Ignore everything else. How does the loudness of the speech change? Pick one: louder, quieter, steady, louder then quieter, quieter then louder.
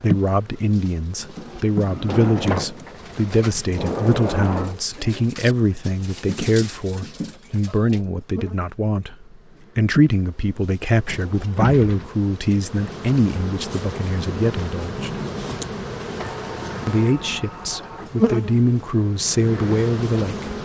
steady.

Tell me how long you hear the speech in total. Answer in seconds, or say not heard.
19 s.